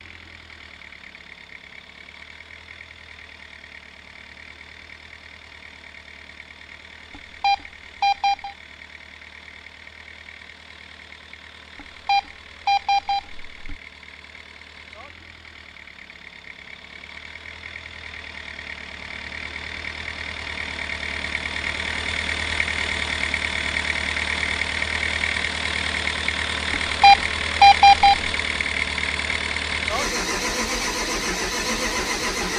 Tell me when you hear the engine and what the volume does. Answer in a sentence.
You can hear the engine from 0.0 to 32.5 s, getting louder.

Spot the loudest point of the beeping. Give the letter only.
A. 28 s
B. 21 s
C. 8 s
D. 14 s
A.